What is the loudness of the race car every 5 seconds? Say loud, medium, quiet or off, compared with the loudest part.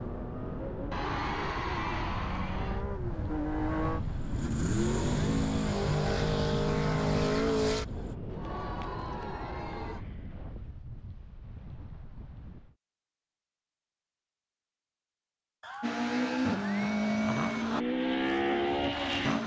medium, loud, off, loud.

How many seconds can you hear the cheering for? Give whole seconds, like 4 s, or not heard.
6 s.